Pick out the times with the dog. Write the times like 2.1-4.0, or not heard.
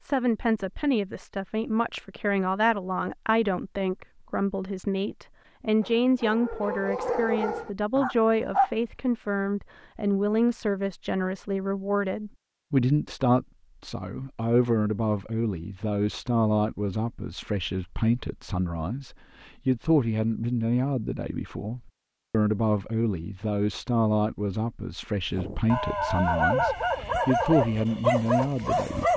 5.8-8.7, 25.3-29.1.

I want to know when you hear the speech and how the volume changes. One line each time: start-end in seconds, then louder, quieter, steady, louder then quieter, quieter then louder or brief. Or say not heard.
0.0-29.1 steady.